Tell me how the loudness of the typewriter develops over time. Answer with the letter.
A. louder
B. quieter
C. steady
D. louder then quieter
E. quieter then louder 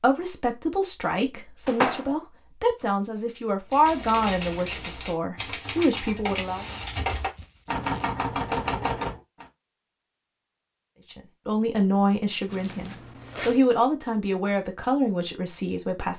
A.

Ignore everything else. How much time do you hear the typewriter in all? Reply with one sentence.
The typewriter can be heard for 6 seconds in total.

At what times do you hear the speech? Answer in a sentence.
You can hear the speech from 0.0 to 6.7 s and from 11.1 to 16.1 s.